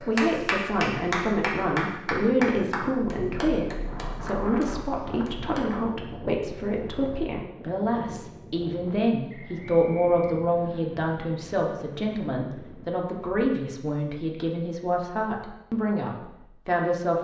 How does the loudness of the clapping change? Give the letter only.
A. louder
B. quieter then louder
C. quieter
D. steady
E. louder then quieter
C.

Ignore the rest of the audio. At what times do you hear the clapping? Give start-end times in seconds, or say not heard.
0.0-5.7.